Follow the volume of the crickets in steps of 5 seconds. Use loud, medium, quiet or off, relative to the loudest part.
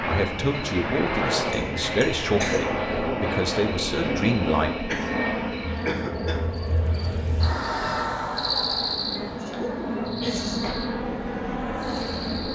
medium, loud, medium.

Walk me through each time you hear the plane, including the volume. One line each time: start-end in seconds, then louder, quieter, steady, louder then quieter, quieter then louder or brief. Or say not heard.
0.0-12.5 quieter then louder.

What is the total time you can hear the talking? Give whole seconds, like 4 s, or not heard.
5 s.